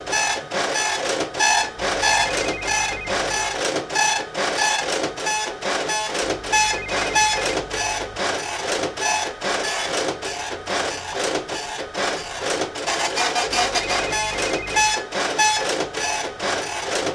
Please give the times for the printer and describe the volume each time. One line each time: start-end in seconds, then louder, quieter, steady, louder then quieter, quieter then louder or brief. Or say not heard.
0.0-17.1 steady.